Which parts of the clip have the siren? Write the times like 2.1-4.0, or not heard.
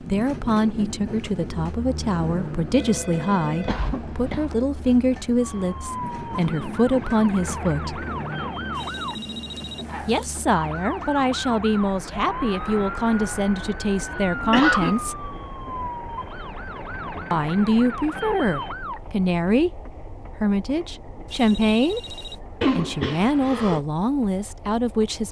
5.4-19.2.